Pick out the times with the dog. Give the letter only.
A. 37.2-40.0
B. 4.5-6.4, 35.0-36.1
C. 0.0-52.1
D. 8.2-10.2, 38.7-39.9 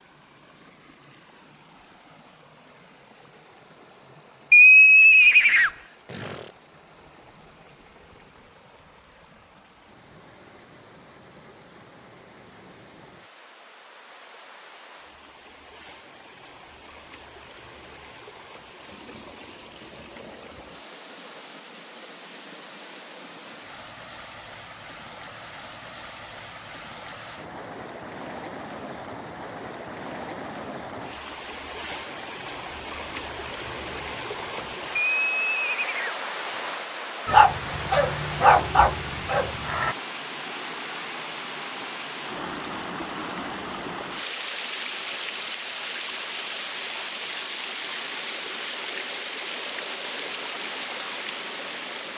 A.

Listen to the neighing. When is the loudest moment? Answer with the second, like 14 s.
5 s.